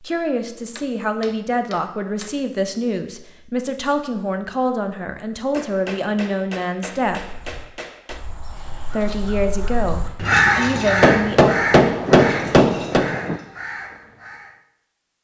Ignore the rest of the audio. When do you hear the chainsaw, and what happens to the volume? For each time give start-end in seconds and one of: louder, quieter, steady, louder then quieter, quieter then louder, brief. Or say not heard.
not heard.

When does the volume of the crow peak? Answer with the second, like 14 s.
10 s.